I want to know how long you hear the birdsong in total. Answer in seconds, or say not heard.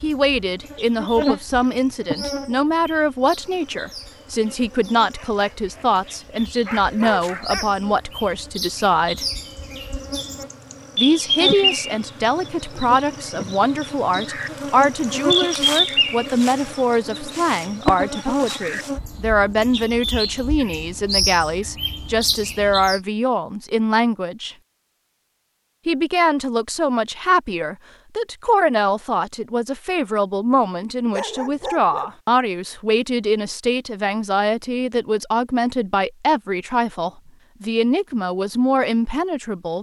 23 s.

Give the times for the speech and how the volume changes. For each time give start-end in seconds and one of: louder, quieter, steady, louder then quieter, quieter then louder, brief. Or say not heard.
0.0-9.2 steady
10.9-24.6 steady
25.9-39.7 steady.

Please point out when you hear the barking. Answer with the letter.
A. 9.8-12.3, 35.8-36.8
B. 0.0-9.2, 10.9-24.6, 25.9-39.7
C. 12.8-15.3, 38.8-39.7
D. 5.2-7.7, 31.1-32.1
D.